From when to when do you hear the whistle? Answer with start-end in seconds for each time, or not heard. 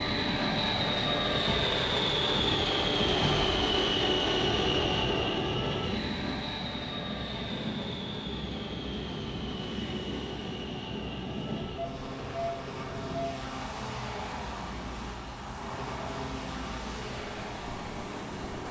not heard.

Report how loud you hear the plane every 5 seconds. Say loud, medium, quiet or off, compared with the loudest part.
loud, medium, quiet, quiet.